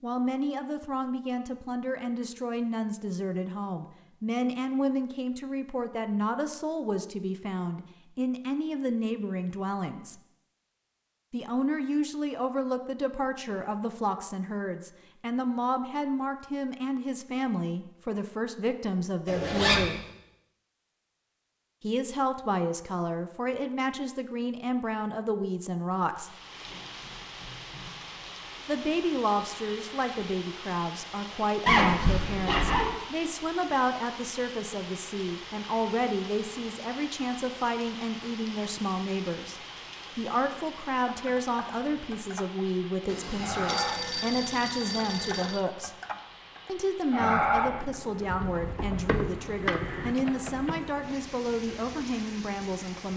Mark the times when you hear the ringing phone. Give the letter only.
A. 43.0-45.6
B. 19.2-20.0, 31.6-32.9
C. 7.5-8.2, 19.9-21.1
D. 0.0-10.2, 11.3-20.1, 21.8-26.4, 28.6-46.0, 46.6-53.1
A.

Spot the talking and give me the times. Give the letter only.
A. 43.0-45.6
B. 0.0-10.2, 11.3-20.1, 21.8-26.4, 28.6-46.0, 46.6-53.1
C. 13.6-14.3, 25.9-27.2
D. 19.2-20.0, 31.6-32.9
B.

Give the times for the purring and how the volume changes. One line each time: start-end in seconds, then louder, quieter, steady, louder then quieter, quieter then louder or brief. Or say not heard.
not heard.